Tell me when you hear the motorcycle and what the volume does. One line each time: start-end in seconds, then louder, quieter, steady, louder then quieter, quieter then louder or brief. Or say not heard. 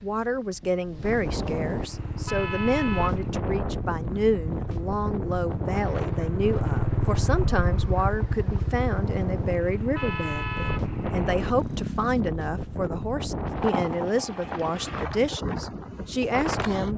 1.9-12.2 louder then quieter.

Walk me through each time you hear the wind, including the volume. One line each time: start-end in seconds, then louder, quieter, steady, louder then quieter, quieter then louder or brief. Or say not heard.
0.0-16.9 quieter then louder.